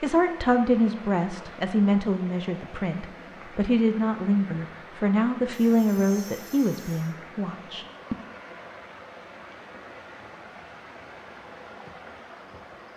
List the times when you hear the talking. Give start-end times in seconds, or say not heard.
0.0-8.2.